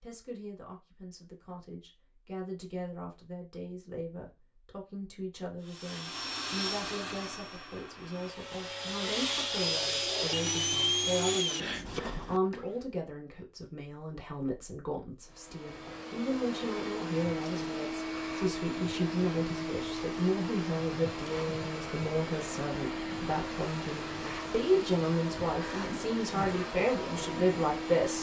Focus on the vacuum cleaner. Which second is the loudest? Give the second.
11 s.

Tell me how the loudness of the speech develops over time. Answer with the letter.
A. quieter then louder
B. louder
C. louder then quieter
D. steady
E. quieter
B.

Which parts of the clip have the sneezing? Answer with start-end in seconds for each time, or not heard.
not heard.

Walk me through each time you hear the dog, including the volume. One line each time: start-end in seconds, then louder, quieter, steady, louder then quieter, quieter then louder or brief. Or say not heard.
not heard.